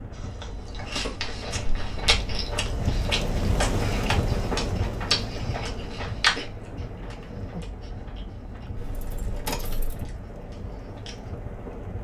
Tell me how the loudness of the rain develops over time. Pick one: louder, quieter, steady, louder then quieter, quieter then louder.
louder then quieter.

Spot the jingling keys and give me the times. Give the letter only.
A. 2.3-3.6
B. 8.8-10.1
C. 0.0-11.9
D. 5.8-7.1
B.